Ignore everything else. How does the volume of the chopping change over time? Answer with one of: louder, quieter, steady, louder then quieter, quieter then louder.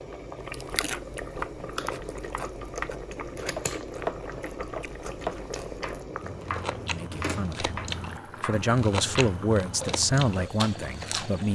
quieter.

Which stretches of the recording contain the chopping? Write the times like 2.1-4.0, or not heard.
0.9-10.5.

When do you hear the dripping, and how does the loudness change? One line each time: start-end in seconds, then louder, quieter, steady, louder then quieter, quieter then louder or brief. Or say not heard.
not heard.